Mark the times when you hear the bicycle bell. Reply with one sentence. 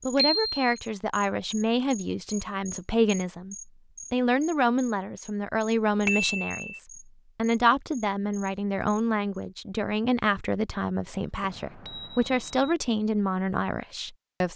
You can hear the bicycle bell from 0.1 to 0.7 s, from 6.0 to 6.6 s and from 11.4 to 12.8 s.